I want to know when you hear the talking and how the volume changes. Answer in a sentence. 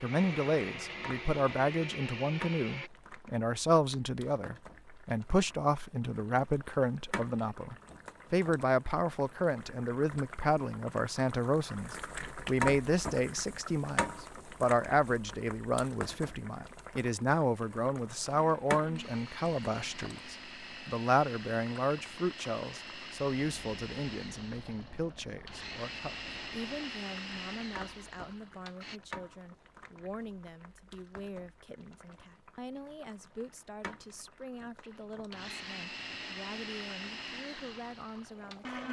The talking can be heard from 0.0 to 38.8 s, getting quieter.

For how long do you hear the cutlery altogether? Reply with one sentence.
The cutlery can't be heard in this clip.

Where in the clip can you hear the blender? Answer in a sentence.
You can hear the blender from 0.0 to 2.9 s, from 18.3 to 29.0 s and from 34.9 to 38.8 s.